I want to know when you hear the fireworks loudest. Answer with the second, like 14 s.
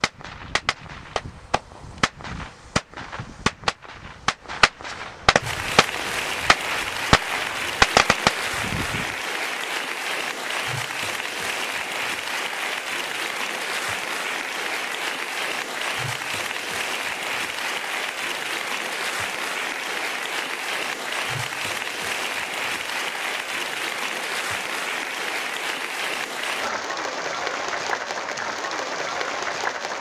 8 s.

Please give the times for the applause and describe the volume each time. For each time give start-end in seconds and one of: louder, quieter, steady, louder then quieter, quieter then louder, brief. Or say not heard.
5.3-29.9 steady.